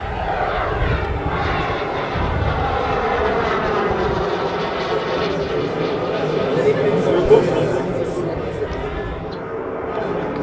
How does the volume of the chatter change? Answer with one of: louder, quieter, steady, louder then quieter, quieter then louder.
louder then quieter.